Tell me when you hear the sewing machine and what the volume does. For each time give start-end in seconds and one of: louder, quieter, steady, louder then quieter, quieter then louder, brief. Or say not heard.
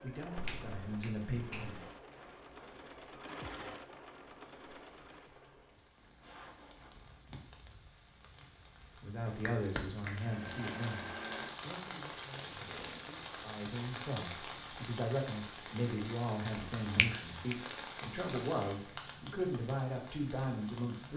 0.0-5.3 louder then quieter
10.2-13.1 brief.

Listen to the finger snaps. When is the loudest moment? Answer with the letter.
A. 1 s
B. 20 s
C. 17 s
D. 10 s
C.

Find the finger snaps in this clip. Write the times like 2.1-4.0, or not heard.
0.3-1.9, 9.2-10.2, 16.6-17.6.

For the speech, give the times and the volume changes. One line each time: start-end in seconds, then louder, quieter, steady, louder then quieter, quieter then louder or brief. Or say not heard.
0.0-1.8 brief
9.0-21.1 quieter then louder.